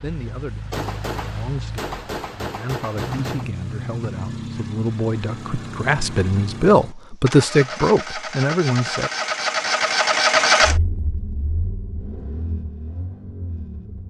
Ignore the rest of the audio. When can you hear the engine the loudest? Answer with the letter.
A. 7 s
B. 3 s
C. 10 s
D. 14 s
C.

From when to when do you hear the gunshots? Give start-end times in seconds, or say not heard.
0.7-3.5.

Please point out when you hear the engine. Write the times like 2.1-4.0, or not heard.
0.0-14.0.